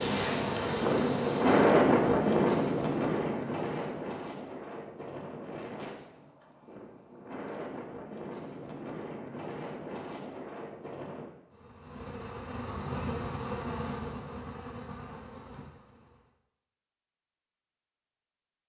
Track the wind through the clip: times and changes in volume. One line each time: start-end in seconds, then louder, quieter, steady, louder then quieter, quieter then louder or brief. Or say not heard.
0.0-11.3 quieter.